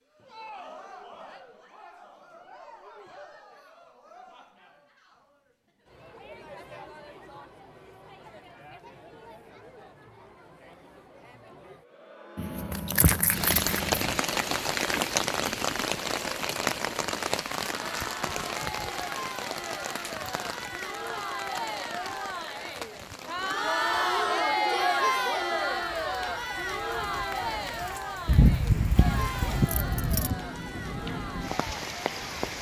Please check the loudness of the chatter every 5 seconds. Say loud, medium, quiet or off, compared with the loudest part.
quiet, quiet, quiet, medium, loud, loud, medium.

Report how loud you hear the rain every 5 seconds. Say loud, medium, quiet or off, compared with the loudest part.
off, off, loud, loud, quiet, quiet, medium.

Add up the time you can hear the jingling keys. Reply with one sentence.
The jingling keys can be heard for 4 seconds in total.